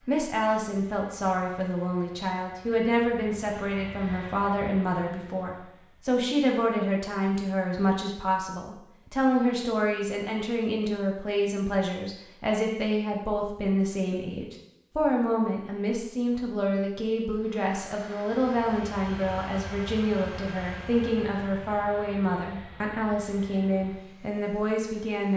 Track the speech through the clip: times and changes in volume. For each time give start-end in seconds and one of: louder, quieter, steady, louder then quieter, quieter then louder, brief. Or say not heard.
0.1-25.3 steady.